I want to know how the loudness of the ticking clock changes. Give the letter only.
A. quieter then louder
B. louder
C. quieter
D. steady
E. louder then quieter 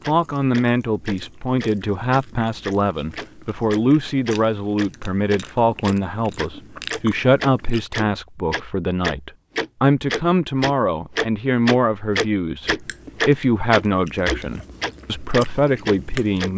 B.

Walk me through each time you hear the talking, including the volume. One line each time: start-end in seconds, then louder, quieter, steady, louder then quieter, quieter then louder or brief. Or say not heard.
0.1-16.5 steady.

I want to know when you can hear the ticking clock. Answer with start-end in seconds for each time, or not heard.
0.0-16.5.